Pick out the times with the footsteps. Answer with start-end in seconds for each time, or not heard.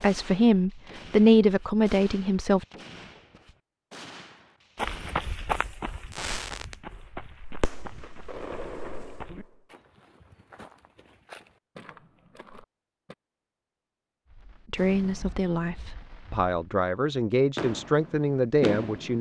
4.8-13.2.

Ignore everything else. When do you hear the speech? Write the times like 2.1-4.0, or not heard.
0.0-2.6, 14.7-19.1.